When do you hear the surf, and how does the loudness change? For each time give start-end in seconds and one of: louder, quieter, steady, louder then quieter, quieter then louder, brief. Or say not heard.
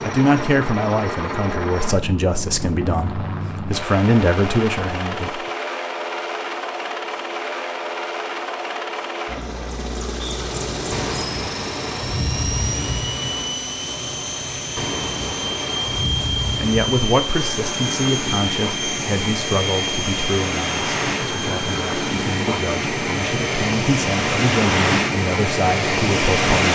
10.4-26.7 louder.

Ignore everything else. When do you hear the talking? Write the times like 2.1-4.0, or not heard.
0.0-5.4, 16.6-26.7.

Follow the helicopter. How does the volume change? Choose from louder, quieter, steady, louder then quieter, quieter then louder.
steady.